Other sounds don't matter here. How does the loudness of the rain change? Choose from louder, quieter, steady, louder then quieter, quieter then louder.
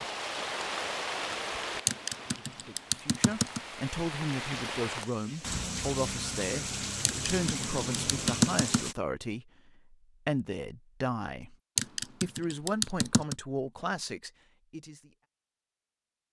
quieter then louder.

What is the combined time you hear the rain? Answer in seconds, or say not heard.
9 s.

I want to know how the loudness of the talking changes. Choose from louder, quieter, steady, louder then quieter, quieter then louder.
steady.